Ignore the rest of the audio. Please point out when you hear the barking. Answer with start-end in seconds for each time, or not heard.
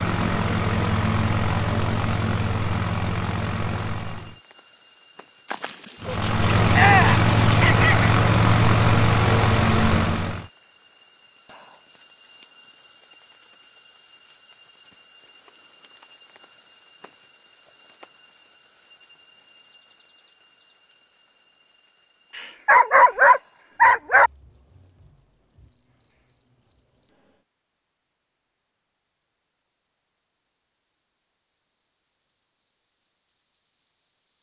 5.5-8.2, 22.4-24.3.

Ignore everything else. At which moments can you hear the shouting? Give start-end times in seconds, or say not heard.
6.7-7.2.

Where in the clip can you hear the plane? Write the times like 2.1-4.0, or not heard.
0.0-4.4, 6.0-10.4.